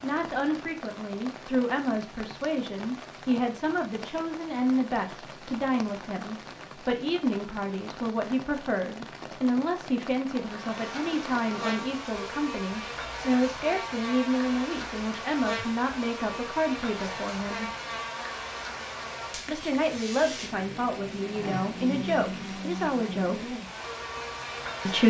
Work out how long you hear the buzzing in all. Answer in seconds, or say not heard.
15 s.